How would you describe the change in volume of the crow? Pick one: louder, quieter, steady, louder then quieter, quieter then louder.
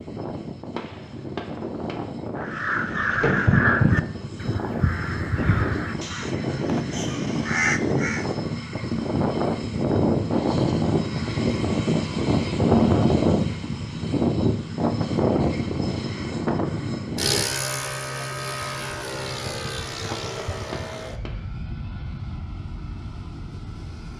quieter then louder.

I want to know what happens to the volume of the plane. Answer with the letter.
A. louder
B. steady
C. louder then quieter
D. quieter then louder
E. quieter
C.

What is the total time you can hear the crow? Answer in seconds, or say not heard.
6 s.